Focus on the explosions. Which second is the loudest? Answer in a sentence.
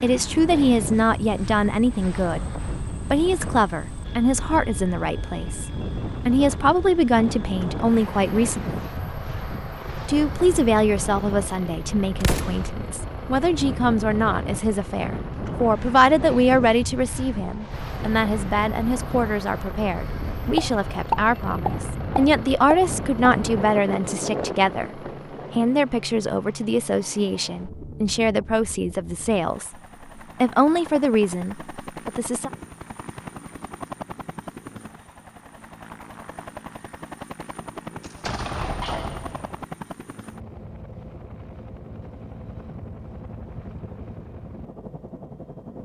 The loudest moment of the explosions is at 21 seconds.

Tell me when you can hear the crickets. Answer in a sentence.
You can't hear the crickets here.